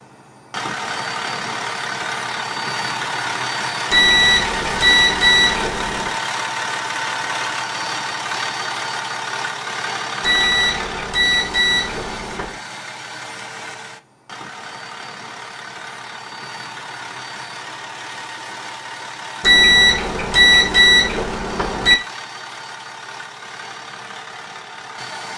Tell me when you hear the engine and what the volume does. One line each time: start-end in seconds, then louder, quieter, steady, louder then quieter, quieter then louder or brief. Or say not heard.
0.0-25.3 quieter.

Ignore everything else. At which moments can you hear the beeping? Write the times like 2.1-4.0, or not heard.
3.9-6.1, 10.2-12.6, 19.4-21.9.